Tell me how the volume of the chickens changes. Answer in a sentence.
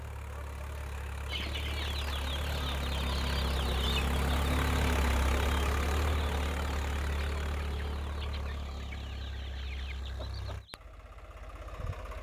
The volume of the chickens goes down.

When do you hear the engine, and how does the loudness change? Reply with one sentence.
You can hear the engine from 0.0 to 12.1 s, getting louder then quieter.